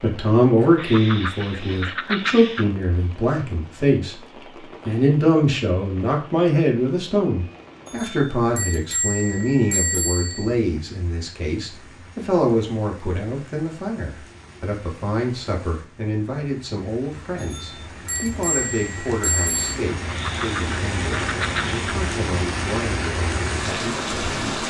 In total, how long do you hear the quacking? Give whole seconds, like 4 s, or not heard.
4 s.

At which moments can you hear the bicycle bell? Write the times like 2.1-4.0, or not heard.
7.8-10.5, 17.4-19.8.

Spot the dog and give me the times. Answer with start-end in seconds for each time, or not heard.
not heard.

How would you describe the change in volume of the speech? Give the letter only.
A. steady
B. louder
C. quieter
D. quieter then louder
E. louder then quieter
C.